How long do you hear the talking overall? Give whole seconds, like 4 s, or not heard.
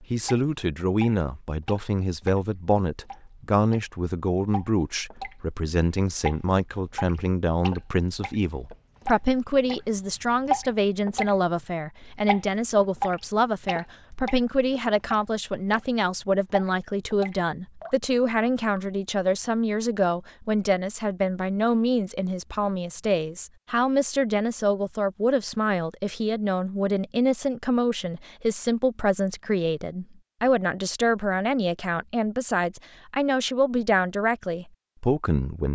36 s.